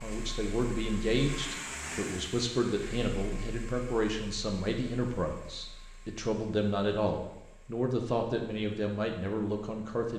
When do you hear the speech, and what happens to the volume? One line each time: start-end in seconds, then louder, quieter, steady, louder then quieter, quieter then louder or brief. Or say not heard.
0.0-10.1 steady.